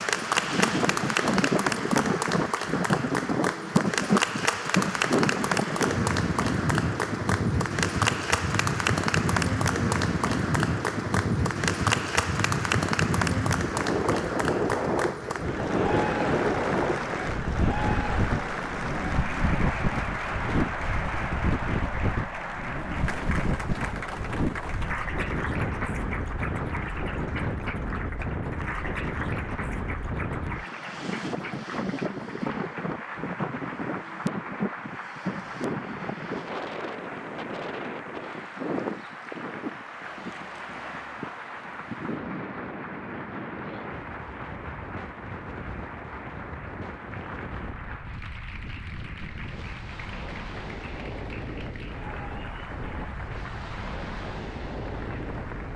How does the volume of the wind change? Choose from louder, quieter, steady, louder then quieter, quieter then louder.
quieter.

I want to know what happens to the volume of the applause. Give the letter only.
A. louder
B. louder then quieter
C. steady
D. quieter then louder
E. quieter
E.